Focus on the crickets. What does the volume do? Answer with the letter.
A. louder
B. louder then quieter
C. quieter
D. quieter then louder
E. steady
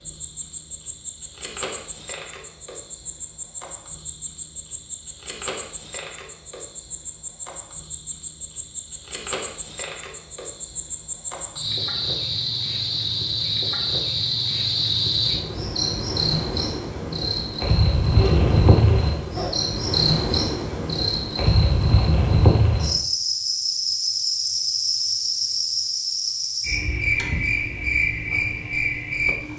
A.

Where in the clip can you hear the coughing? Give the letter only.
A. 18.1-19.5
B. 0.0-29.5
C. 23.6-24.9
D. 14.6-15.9
A.